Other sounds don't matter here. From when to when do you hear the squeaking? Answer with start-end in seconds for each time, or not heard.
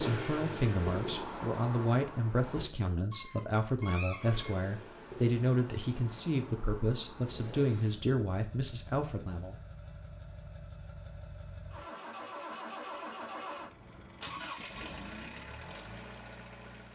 3.1-4.6.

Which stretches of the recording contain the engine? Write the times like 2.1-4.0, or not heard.
0.0-2.7, 4.2-16.9.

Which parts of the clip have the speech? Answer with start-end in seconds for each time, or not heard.
0.0-9.6.